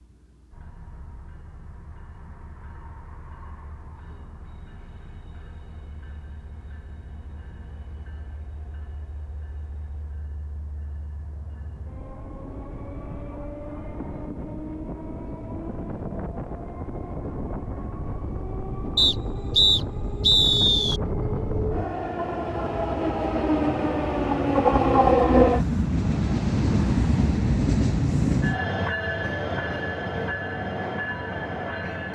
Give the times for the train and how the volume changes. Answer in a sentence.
The train can be heard from 0.0 to 32.1 s, getting louder.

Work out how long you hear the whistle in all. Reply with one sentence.
You can hear the whistle for 2 seconds altogether.